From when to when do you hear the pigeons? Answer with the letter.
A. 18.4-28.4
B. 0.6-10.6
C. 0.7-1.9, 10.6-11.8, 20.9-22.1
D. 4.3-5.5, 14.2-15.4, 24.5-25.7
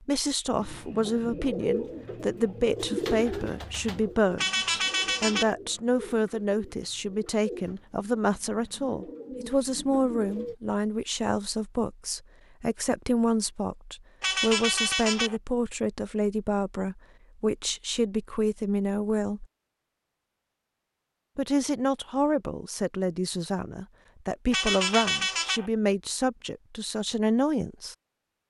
B.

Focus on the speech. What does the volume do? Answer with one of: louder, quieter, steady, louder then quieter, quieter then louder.
steady.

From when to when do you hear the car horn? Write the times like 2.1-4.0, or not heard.
4.3-5.5, 14.2-15.4, 24.5-25.7.